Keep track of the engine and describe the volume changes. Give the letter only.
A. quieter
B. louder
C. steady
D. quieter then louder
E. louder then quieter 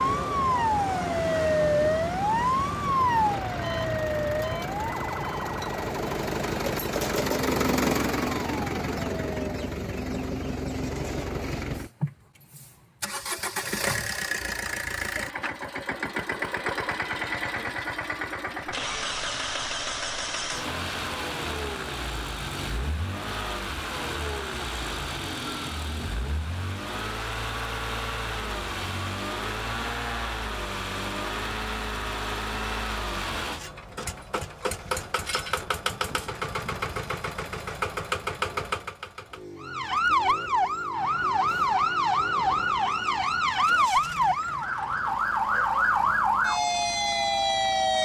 A.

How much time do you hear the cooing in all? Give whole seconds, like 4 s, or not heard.
not heard.